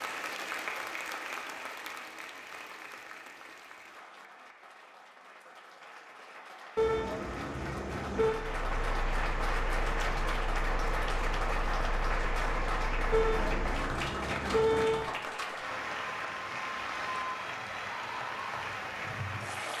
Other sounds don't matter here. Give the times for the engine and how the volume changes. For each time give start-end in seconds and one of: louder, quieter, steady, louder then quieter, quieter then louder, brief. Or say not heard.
8.3-13.8 steady.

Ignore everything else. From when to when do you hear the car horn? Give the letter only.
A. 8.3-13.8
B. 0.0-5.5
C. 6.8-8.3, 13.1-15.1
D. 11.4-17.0
C.